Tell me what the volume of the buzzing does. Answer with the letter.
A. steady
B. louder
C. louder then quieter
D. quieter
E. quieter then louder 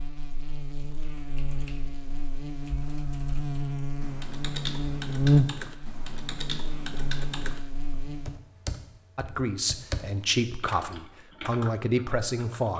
C.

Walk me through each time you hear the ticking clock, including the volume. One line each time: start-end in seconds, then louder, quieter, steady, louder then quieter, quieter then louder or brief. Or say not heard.
not heard.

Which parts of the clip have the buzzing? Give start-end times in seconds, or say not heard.
0.0-8.4.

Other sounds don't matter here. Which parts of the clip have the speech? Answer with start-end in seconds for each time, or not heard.
9.2-12.7.